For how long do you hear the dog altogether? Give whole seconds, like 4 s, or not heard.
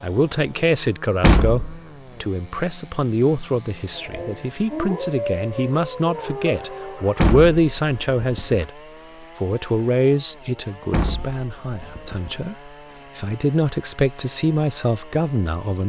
3 s.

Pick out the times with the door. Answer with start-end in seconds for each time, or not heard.
1.2-1.8, 7.2-8.7, 10.9-12.4.